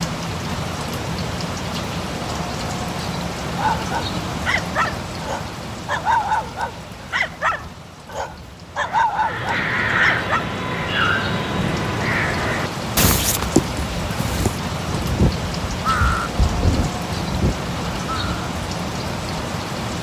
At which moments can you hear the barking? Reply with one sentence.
You can hear the barking from 3.5 to 10.4 s.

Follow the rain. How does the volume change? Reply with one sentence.
The volume of the rain goes down, then up.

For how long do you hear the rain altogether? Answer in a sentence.
The rain can be heard for 20 seconds in total.